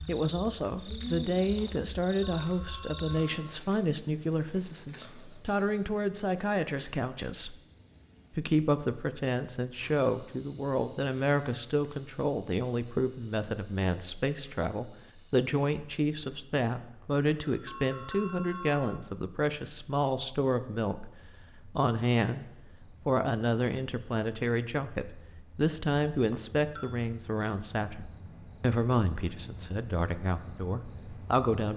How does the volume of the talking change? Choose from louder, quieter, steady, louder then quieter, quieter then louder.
steady.